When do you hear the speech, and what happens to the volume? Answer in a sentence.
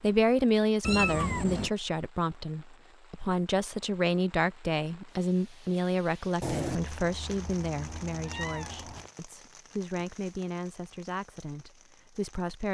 The speech can be heard from 0.0 to 12.6 s, getting quieter.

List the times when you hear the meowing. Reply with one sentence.
You can hear the meowing from 0.8 to 1.7 s and from 6.4 to 9.1 s.